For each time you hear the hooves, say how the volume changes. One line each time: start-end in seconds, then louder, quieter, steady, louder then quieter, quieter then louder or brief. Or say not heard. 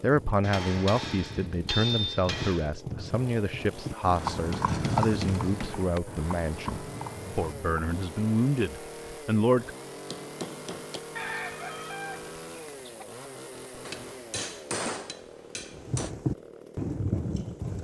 0.1-7.8 louder then quieter
15.8-17.8 brief.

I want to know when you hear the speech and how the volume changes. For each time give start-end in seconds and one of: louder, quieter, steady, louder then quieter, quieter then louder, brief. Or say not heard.
0.0-9.7 steady.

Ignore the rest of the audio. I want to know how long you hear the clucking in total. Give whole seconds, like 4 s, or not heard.
2 s.